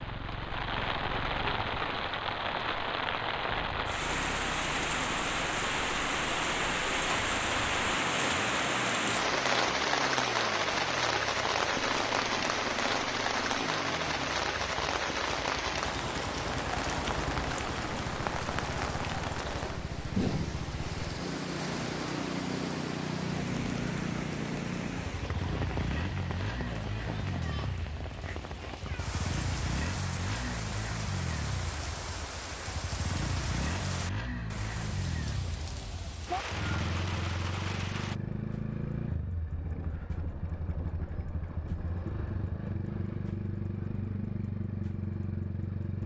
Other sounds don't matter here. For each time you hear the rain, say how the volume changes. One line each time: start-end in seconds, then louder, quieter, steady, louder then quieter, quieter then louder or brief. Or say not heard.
0.0-38.2 quieter.